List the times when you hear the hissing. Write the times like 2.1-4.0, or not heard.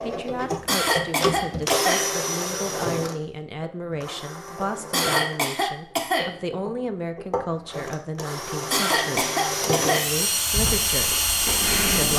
10.5-12.1.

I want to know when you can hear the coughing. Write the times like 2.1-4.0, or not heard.
0.7-2.0, 4.9-6.3, 8.7-10.1.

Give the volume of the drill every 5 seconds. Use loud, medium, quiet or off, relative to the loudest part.
loud, medium, loud.